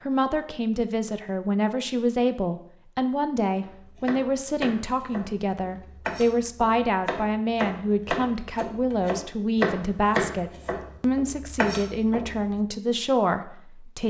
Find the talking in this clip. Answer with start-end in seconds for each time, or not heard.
0.0-14.0.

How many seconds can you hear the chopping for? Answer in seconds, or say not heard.
9 s.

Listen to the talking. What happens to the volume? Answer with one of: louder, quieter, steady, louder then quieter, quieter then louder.
steady.